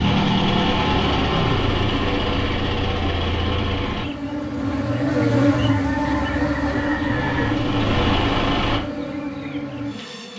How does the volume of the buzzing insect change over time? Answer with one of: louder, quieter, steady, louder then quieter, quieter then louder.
louder then quieter.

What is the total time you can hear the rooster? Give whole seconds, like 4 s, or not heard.
2 s.